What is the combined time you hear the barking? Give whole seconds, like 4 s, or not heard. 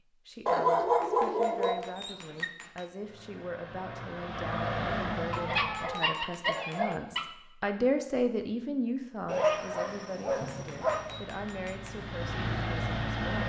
6 s.